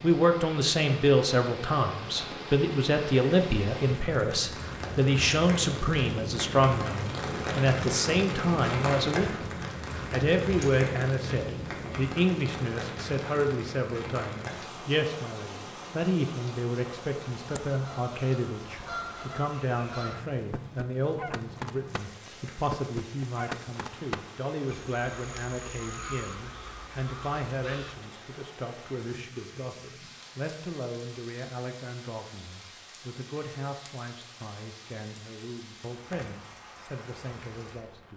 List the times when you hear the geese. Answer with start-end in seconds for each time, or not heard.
17.4-28.1.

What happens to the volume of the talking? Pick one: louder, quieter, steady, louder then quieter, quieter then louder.
quieter.